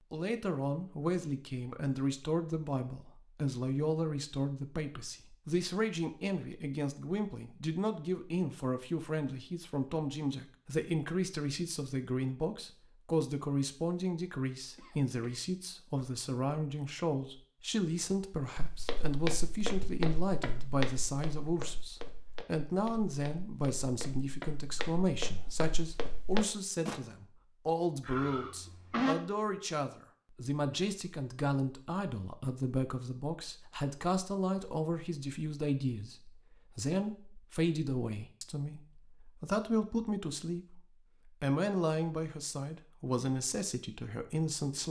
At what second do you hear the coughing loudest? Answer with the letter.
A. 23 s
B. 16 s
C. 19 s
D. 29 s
D.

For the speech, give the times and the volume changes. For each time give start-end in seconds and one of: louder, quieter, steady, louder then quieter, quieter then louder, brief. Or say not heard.
0.1-44.8 steady.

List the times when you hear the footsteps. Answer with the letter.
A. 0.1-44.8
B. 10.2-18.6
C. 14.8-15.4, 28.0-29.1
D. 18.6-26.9
D.